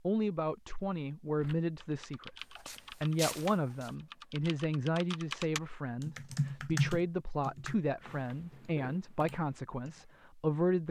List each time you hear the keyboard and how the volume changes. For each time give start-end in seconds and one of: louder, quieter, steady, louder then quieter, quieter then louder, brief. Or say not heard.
1.4-10.1 louder then quieter.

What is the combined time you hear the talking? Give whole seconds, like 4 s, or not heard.
11 s.